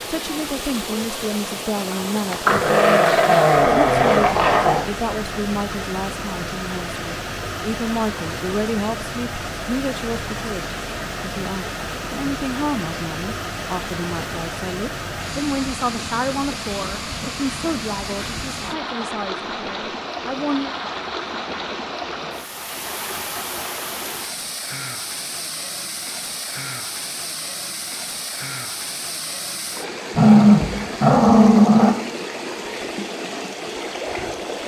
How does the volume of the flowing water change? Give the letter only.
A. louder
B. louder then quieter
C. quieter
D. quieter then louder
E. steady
E.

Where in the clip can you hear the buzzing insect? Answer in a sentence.
The buzzing insect can't be heard in this clip.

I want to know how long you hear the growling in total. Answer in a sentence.
You can hear the growling for 4 seconds altogether.